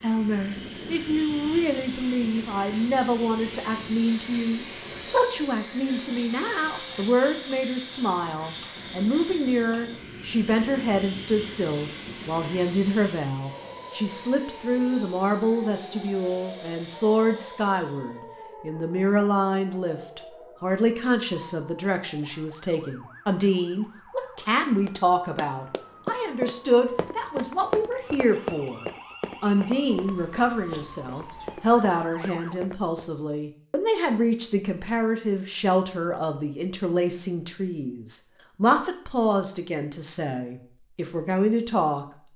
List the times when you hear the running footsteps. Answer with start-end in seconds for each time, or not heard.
24.9-33.4.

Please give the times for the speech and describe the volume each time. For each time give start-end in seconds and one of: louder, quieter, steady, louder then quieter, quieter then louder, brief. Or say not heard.
0.0-42.0 steady.